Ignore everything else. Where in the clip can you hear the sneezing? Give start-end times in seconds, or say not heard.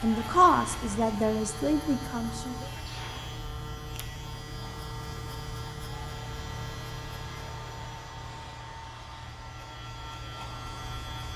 2.7-3.4.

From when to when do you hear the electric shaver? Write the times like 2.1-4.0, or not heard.
0.0-11.3.